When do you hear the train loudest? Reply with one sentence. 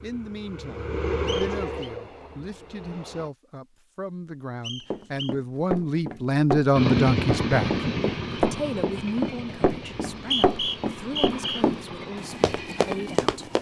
The loudest moment of the train is at 7 seconds.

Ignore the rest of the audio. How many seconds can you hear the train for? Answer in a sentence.
The train can be heard for 10 seconds in total.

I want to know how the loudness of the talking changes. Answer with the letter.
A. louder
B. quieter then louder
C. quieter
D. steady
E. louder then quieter
E.